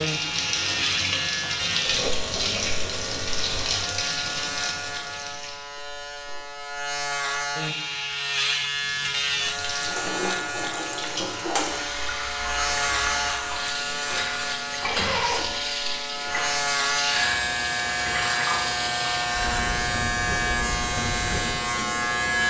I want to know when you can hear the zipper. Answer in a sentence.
The zipper can be heard from 14.8 to 15.6 s.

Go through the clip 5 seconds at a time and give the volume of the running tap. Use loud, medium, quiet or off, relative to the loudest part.
loud, medium, loud, loud, medium.